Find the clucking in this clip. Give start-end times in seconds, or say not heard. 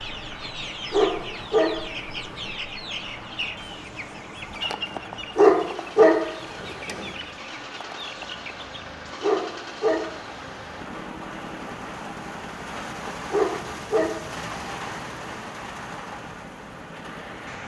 0.0-8.8.